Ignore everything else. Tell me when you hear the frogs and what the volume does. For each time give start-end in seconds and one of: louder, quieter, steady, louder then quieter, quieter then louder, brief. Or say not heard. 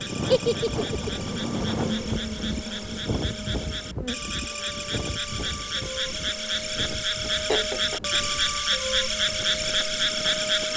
0.0-10.7 louder.